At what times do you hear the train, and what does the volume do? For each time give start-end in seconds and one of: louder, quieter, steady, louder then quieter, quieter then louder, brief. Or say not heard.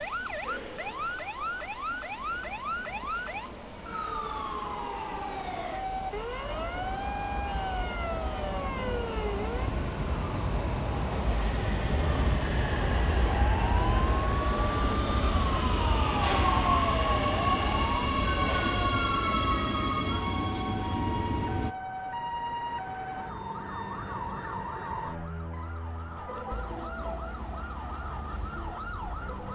0.0-21.8 louder.